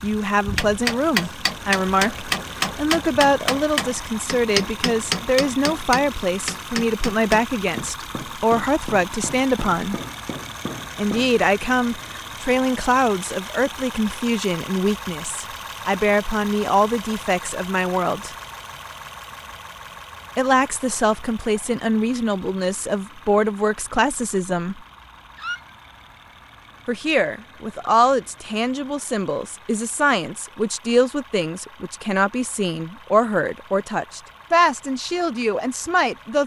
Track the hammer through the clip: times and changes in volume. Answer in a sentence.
The hammer can be heard from 0.5 to 11.3 s, getting quieter.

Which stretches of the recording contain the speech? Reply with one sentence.
The speech can be heard from 0.0 to 9.9 s, from 10.9 to 18.4 s, from 20.4 to 24.8 s and from 26.9 to 36.4 s.